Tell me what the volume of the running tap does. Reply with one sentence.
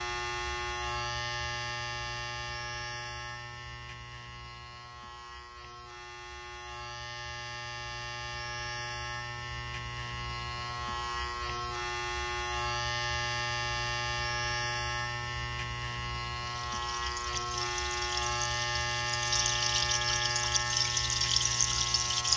The loudness of the running tap goes up.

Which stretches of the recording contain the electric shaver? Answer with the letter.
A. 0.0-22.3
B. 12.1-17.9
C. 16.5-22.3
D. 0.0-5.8
A.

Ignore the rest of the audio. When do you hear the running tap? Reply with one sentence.
You can hear the running tap from 16.5 to 22.3 s.